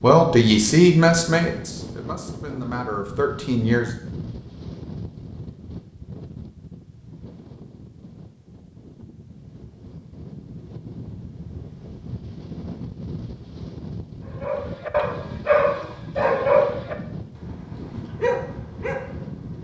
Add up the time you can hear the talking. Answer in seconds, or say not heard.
4 s.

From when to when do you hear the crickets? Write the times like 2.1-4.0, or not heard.
not heard.